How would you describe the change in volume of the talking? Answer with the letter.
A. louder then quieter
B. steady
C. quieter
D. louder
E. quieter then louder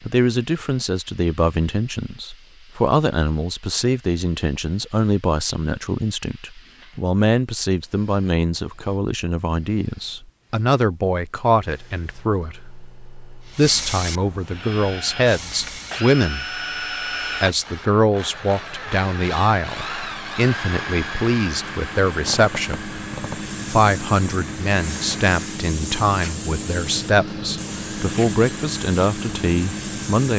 B.